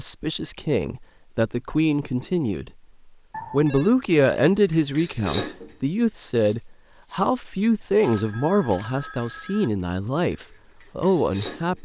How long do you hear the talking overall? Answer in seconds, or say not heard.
11 s.